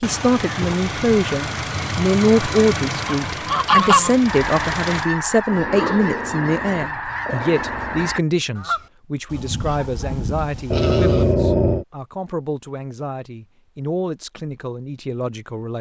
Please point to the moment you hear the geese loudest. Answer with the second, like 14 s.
4 s.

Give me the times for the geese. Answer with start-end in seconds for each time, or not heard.
3.0-11.3.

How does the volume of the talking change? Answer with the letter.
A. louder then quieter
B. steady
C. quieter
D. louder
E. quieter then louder
C.